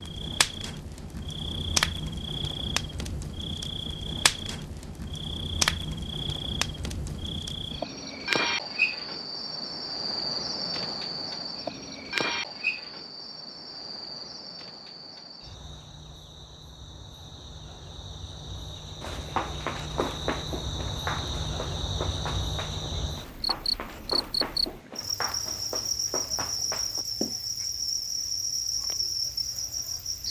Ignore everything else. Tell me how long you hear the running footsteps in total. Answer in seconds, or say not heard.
8 s.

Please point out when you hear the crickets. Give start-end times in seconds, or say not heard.
0.0-30.2.